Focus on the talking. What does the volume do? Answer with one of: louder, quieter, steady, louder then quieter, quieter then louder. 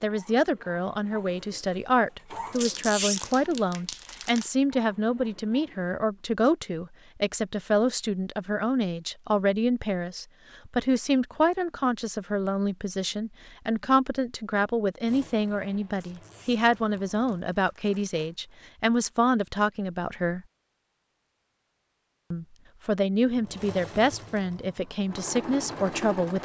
steady.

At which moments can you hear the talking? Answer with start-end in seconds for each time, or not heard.
0.0-20.4, 22.3-26.3.